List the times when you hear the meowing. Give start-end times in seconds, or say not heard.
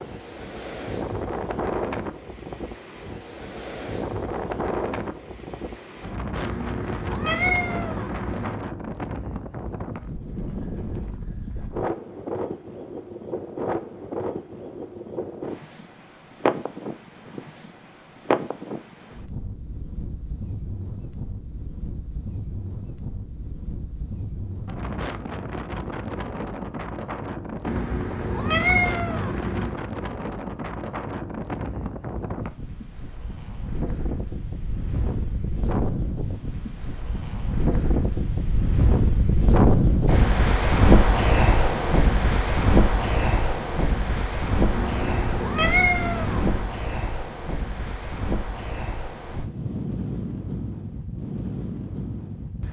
6.4-8.6, 27.6-29.8, 44.7-46.6.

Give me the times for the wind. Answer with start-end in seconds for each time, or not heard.
0.0-52.6.